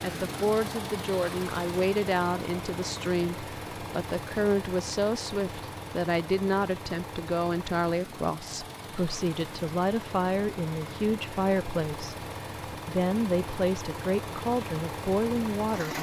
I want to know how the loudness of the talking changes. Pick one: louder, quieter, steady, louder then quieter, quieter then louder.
steady.